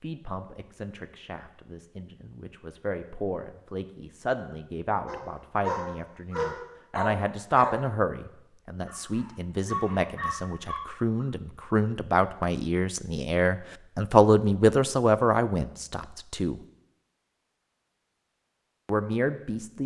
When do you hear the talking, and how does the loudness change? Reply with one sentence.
The talking can be heard from 0.0 to 16.6 s, getting louder; and briefly from 18.9 to 19.8 s.